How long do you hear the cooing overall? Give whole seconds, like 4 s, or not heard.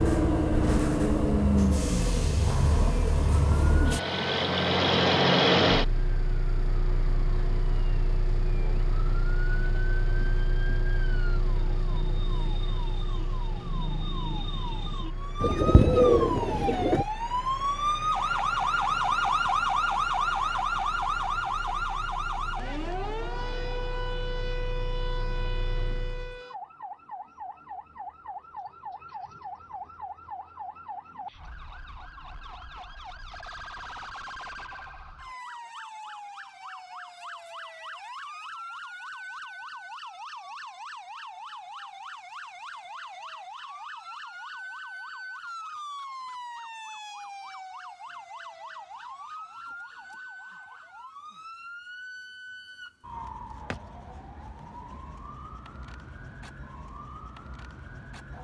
2 s.